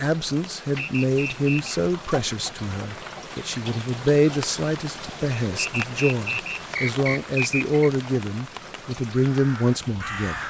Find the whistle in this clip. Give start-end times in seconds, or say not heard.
0.8-1.8, 5.6-7.9.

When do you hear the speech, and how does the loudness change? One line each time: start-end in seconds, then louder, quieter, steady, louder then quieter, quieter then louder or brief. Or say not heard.
0.0-10.3 steady.